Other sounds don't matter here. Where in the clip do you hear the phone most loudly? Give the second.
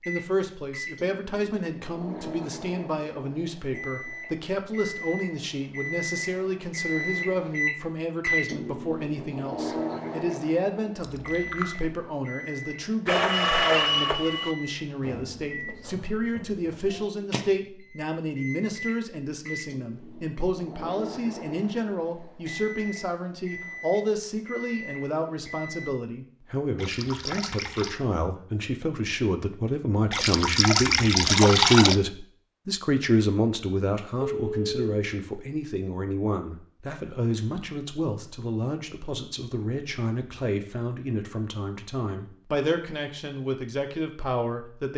14 s.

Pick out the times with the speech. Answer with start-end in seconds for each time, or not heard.
0.1-44.9.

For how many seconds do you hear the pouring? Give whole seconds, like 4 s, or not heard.
4 s.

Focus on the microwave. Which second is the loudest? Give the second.
8 s.